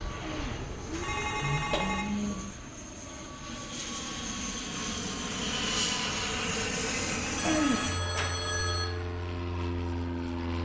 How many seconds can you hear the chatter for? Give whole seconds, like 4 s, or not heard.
not heard.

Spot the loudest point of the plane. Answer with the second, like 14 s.
6 s.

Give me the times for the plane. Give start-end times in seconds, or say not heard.
0.0-10.6.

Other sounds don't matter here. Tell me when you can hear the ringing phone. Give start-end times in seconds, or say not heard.
1.0-2.5, 7.3-8.8.